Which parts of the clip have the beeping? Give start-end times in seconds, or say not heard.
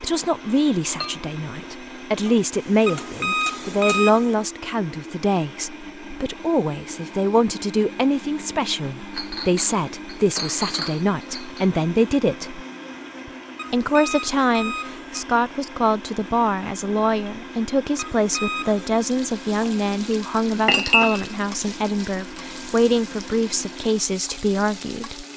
2.9-4.3, 13.6-15.2, 17.9-19.0.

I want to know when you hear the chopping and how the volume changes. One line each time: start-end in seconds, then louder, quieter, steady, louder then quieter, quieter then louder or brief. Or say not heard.
not heard.